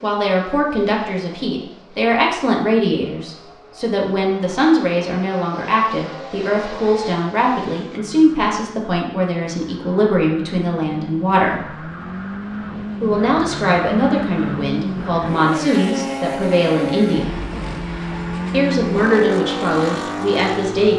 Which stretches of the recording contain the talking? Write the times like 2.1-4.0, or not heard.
0.0-11.8, 13.0-17.4, 18.5-20.9.